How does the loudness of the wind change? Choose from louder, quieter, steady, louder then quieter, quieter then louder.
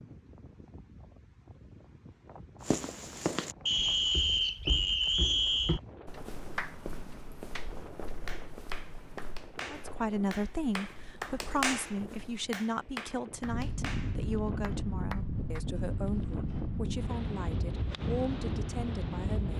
louder.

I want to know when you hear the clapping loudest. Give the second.
12 s.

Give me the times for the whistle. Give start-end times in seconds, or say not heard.
3.6-5.8.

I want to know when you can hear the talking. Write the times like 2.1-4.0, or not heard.
9.7-19.5.